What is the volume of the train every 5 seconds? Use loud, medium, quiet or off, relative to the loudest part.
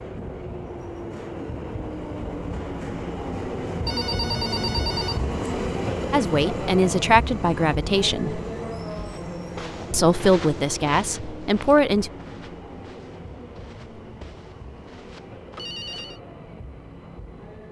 loud, loud, medium, quiet.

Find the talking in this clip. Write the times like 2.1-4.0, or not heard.
6.1-8.4, 9.9-12.1.